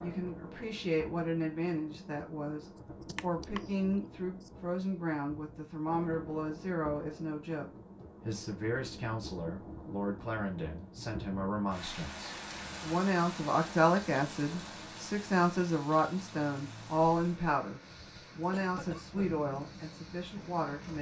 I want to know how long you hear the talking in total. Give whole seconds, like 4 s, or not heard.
21 s.